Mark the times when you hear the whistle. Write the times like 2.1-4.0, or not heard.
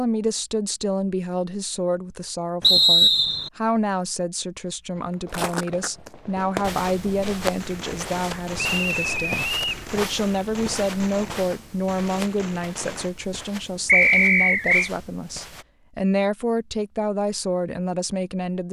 2.6-3.5, 8.6-9.8, 13.8-14.9.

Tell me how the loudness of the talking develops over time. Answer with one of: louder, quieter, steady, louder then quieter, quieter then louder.
steady.